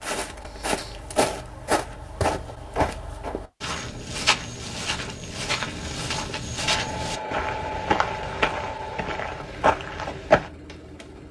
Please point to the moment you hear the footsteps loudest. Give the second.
10 s.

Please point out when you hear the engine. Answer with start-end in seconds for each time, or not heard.
6.6-11.2.